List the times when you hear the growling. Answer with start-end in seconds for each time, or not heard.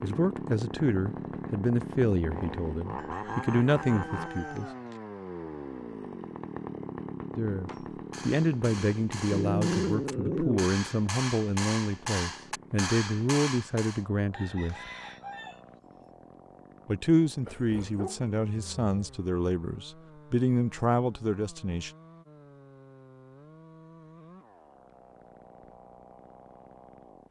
9.3-10.7, 17.4-19.1.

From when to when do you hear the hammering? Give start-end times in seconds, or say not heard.
7.7-14.1.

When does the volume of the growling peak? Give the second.
10 s.